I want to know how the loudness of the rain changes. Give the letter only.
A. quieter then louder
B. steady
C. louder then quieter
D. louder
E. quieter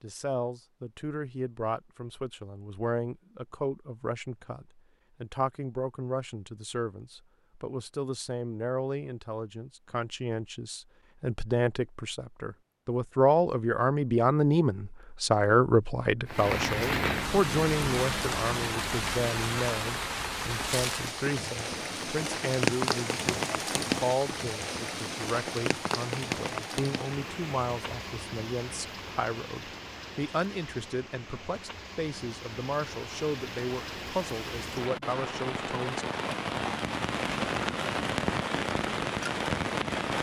A.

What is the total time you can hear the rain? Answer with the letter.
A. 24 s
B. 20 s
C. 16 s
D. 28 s
A.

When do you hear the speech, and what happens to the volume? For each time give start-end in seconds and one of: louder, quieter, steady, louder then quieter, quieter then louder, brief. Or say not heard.
0.0-36.0 louder then quieter.